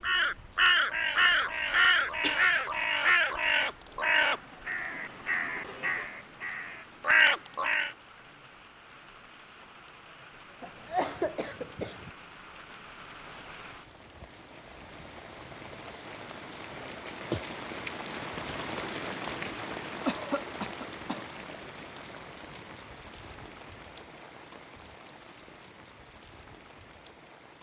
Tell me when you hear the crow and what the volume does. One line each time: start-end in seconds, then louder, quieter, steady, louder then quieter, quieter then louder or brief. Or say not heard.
0.0-8.0 quieter then louder.